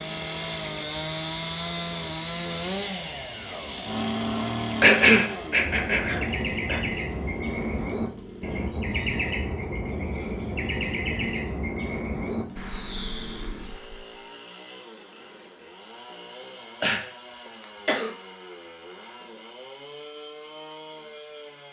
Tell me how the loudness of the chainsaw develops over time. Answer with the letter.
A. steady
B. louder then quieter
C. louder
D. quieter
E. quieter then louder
D.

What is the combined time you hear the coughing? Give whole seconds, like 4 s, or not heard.
3 s.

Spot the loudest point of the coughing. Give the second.
5 s.